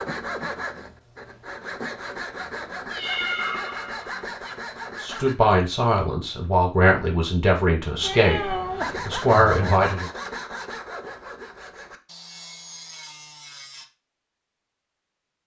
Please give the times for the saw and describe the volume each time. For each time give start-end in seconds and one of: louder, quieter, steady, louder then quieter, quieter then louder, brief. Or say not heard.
0.0-5.3 steady
8.8-13.8 quieter.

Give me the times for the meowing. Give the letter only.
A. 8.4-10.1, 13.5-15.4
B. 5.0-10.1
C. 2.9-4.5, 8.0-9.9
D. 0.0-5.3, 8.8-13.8
C.